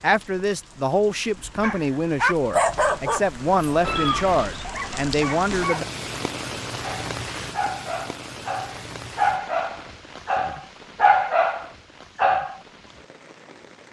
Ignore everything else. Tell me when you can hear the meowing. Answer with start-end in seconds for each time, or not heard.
3.8-4.7.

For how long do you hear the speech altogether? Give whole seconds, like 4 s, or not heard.
6 s.